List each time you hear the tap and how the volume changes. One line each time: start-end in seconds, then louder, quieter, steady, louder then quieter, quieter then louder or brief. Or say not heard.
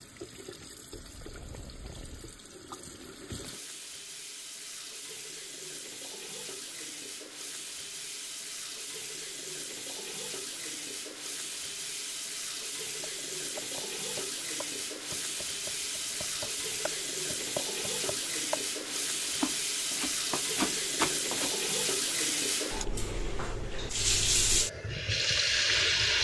0.0-26.1 louder.